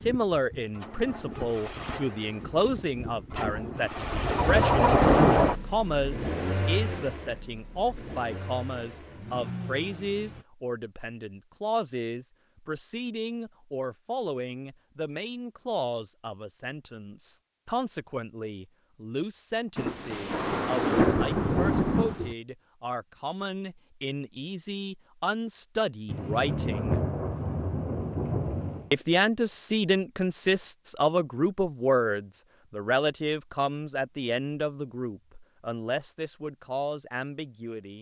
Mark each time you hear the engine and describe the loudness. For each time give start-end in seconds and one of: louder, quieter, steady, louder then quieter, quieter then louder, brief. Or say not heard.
0.0-10.4 louder then quieter.